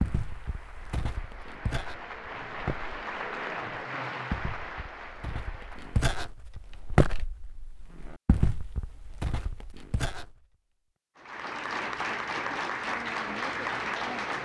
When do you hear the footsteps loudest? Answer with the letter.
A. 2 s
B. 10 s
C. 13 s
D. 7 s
D.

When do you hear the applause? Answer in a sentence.
The applause can be heard from 0.0 to 6.2 s and from 11.2 to 14.4 s.